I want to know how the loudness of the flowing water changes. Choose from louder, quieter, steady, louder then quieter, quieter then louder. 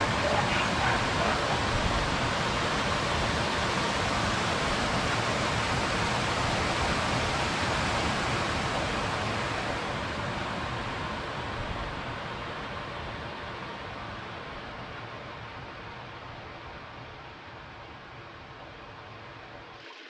quieter.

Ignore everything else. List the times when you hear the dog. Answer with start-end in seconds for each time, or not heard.
0.0-1.6.